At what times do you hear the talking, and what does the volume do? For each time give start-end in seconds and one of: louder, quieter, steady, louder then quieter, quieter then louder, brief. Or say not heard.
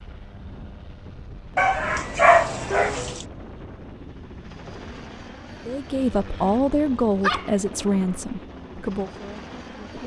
5.7-10.0 quieter.